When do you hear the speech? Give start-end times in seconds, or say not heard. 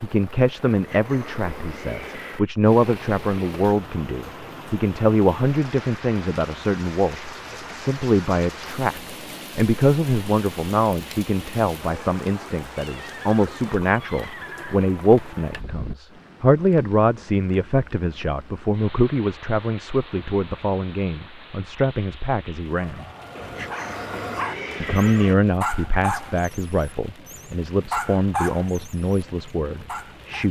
0.0-23.1, 24.8-30.4.